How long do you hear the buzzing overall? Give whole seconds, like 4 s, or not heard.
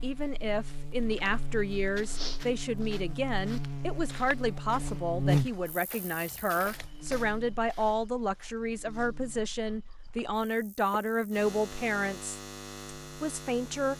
14 s.